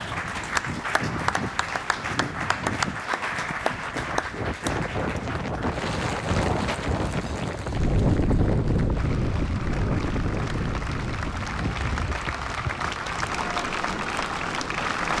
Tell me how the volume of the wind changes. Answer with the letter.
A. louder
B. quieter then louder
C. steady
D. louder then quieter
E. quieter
D.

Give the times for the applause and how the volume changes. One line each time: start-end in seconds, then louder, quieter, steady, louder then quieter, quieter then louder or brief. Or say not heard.
0.0-15.1 quieter then louder.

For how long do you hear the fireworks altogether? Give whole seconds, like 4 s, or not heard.
not heard.